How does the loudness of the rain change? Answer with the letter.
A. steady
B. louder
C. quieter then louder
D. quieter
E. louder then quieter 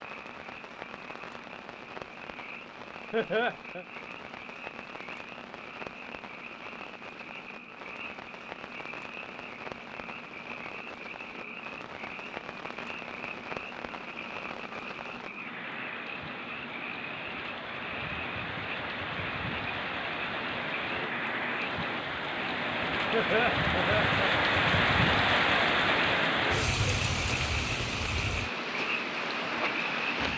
B.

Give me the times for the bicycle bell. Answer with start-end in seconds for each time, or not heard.
not heard.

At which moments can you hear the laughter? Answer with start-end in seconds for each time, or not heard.
3.1-3.9, 23.1-24.1.